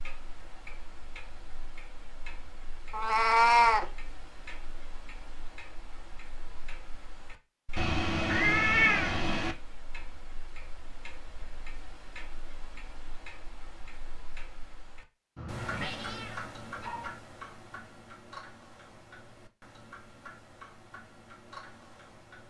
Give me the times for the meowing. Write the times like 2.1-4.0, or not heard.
2.9-3.9, 7.8-9.6, 15.3-17.1.